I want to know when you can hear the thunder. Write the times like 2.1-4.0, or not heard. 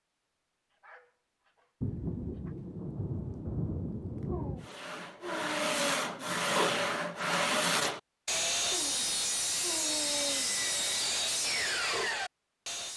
1.8-4.7.